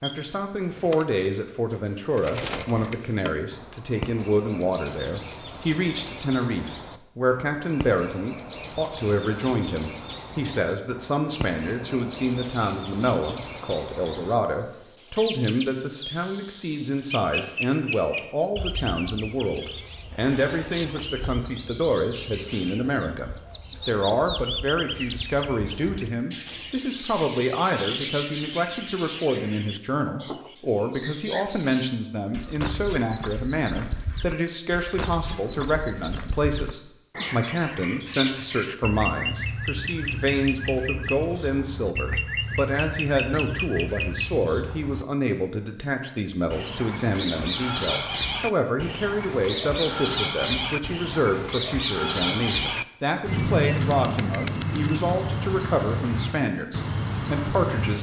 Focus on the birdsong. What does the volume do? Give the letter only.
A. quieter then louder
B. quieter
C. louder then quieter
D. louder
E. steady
D.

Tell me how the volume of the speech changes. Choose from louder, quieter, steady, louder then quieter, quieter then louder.
steady.